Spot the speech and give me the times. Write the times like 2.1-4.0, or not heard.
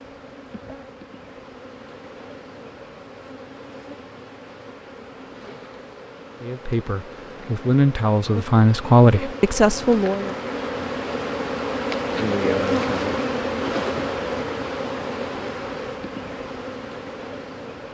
6.4-10.3.